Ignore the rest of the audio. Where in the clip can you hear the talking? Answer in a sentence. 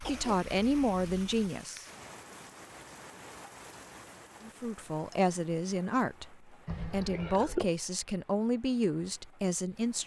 The talking can be heard from 0.0 to 1.9 s and from 4.4 to 10.0 s.